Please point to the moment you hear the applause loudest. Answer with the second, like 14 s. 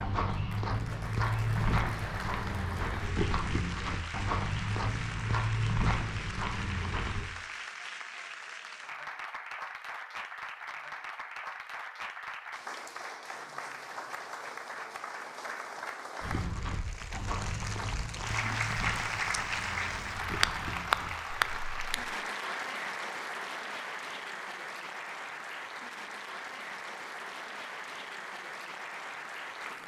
21 s.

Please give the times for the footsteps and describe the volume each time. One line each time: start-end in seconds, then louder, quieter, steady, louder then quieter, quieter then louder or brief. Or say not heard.
0.0-7.3 steady
16.2-22.1 quieter.